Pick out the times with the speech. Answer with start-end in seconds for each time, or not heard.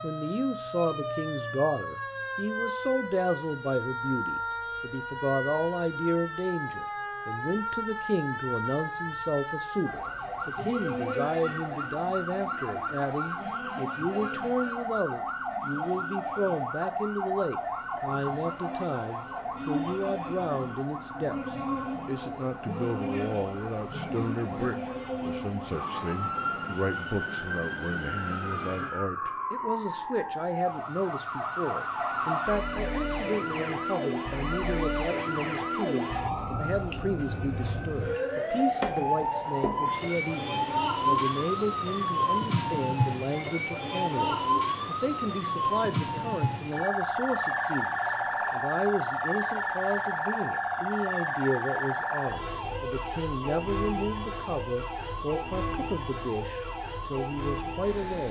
0.0-58.2.